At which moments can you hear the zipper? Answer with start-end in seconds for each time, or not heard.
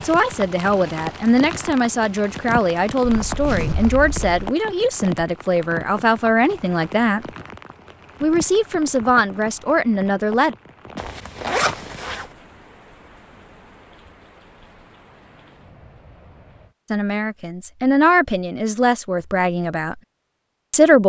3.2-4.5, 10.9-12.2.